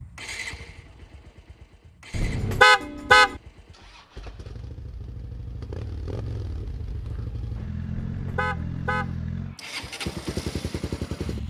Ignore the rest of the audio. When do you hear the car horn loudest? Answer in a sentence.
The loudest moment of the car horn is at 3 seconds.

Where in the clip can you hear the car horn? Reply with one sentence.
You can hear the car horn from 2.1 to 3.4 s and from 7.9 to 9.2 s.